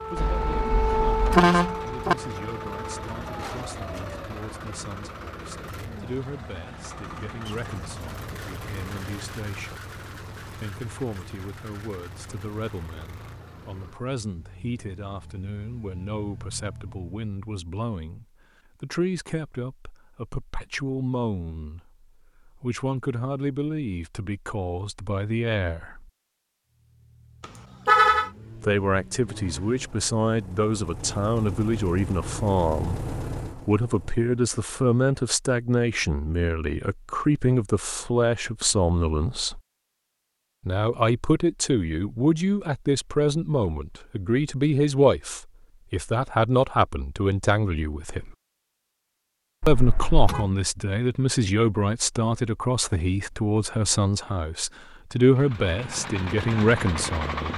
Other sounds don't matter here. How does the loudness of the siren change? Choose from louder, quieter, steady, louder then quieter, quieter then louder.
quieter.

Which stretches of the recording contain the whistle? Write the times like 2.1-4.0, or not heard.
not heard.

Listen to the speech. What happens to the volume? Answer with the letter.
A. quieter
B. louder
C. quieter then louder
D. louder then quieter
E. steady
B.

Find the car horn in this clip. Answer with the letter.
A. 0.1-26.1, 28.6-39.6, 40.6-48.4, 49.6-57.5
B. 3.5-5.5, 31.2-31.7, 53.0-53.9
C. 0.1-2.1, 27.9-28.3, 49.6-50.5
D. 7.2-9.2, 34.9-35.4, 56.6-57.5
C.